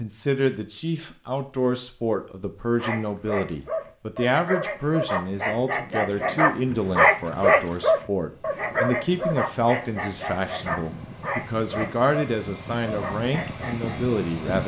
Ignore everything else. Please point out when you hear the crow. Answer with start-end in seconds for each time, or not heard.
not heard.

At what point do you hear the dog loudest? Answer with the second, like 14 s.
7 s.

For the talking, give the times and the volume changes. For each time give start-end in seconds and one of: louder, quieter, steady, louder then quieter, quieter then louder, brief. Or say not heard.
0.0-14.6 steady.